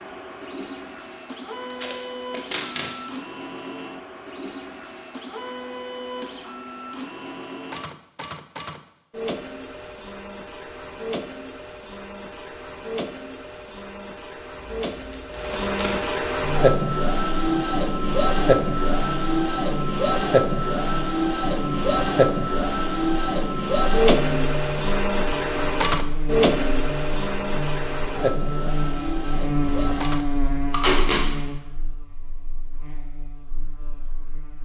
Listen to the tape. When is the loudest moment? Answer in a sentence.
The loudest moment of the tape is at 31 seconds.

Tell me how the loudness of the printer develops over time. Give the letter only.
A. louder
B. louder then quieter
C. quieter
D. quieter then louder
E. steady
A.